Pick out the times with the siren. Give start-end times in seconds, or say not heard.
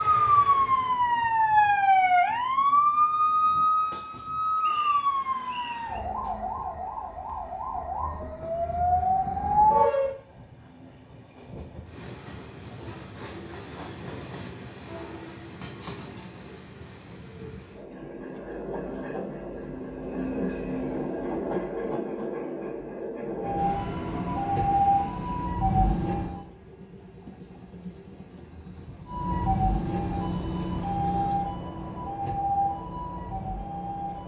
0.0-10.2, 23.4-26.4, 29.1-34.2.